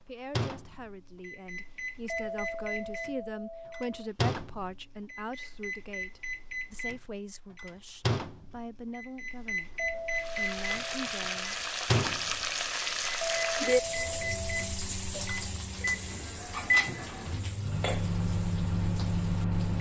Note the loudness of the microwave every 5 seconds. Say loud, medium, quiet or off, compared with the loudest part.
medium, medium, loud, loud.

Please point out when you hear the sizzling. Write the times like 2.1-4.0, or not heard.
10.1-19.7.